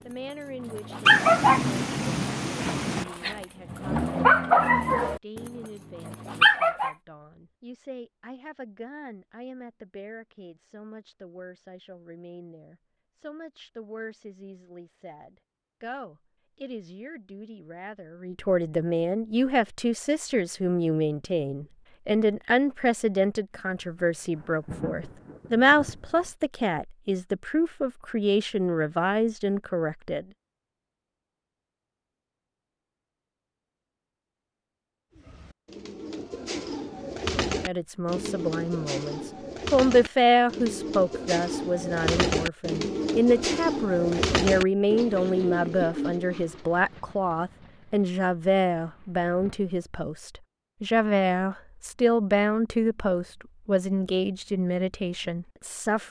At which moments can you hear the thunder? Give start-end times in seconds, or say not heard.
1.1-3.0, 23.9-26.3, 46.5-49.6.